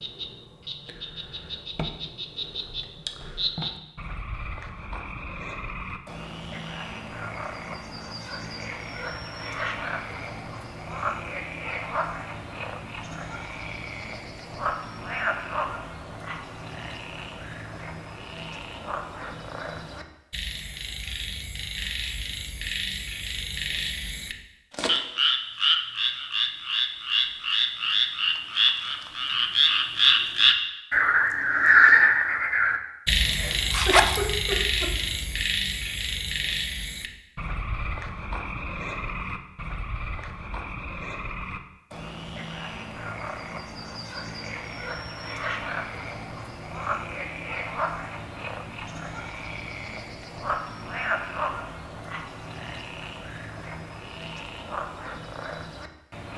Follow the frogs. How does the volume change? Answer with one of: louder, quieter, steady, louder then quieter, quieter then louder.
louder then quieter.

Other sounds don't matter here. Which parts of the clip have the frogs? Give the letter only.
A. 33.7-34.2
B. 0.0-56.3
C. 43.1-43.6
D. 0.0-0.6
B.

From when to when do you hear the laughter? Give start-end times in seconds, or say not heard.
33.2-34.9.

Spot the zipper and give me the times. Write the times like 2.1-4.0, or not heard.
33.7-34.2.